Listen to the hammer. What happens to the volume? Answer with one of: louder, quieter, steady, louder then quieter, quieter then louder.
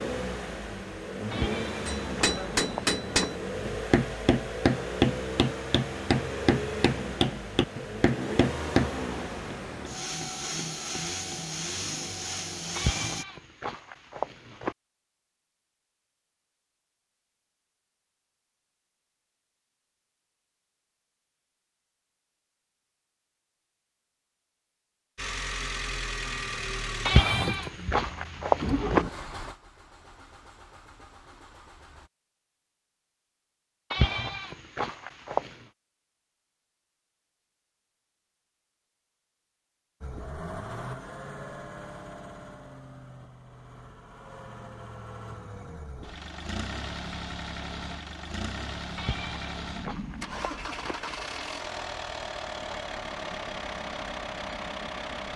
quieter.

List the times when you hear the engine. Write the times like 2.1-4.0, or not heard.
0.0-13.2, 25.1-32.1, 40.0-55.3.